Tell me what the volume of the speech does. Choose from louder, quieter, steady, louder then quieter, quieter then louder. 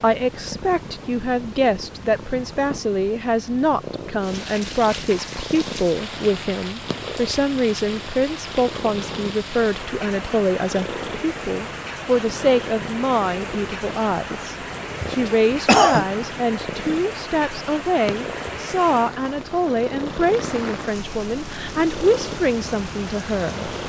steady.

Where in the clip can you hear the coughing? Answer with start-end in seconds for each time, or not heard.
15.0-16.1.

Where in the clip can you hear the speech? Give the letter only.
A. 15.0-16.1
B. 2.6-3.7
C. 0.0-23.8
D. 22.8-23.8
C.